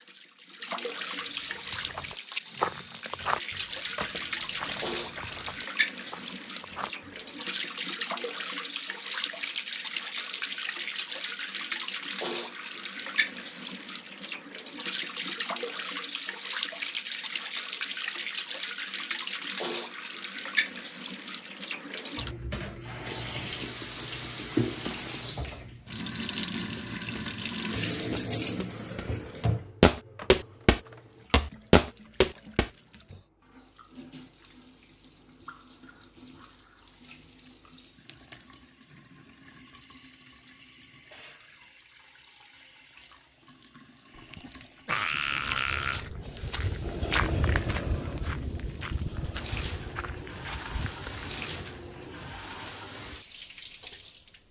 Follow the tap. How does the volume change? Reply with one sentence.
The volume of the tap goes down, then up.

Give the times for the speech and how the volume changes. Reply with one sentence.
The speech can't be heard in this clip.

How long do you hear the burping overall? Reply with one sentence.
You can hear the burping for 2 seconds altogether.